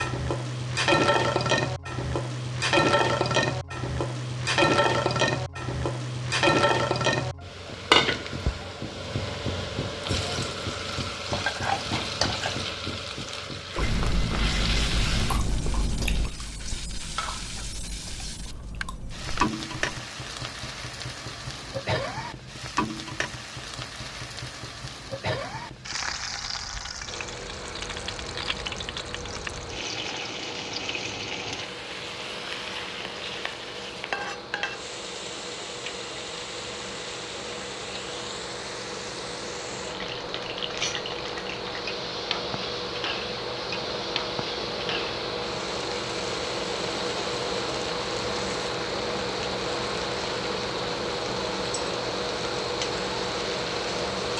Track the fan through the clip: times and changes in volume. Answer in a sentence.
You can hear the fan from 27.1 to 54.3 s, getting louder.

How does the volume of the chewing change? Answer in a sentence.
The volume of the chewing goes down.